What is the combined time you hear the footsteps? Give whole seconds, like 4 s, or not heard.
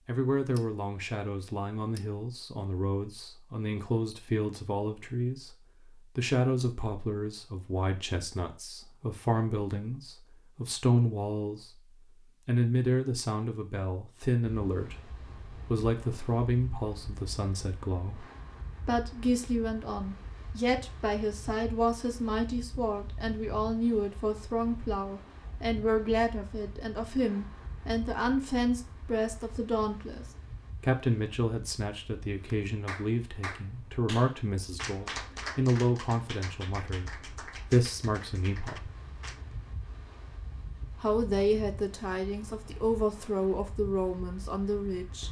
not heard.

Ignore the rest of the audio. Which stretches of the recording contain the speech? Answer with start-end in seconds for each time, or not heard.
0.1-11.8, 12.4-18.2, 18.9-38.9, 41.0-45.2.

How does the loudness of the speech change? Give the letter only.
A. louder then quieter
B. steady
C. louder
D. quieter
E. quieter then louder
B.